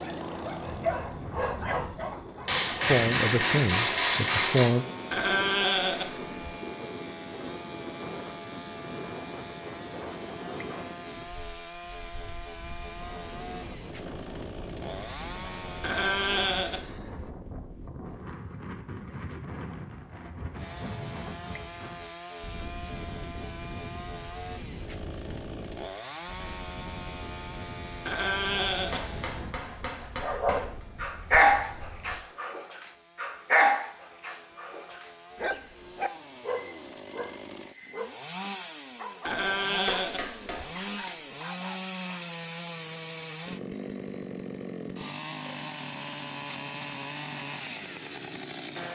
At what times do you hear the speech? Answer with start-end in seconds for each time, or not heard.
2.9-4.8.